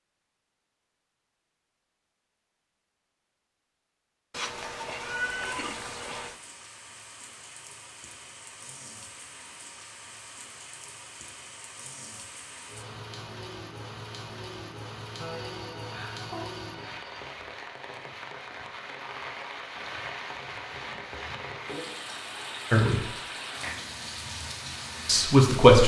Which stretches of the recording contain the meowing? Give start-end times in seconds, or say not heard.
4.3-6.3.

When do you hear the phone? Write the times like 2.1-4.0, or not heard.
15.2-17.1.